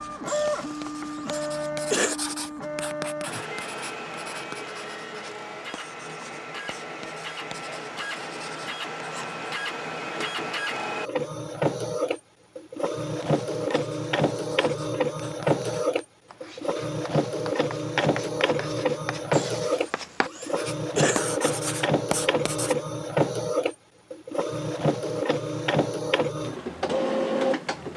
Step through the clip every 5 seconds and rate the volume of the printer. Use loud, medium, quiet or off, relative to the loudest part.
medium, medium, loud, loud, loud, loud.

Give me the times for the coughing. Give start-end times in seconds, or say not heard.
0.2-2.1, 19.3-21.2.